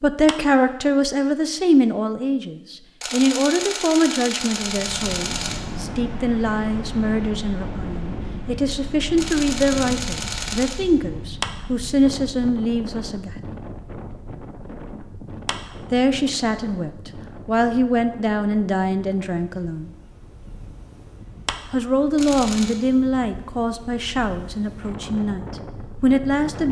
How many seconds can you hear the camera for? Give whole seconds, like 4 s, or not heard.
5 s.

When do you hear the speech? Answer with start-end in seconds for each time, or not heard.
0.0-13.3, 15.9-19.9, 21.7-26.6.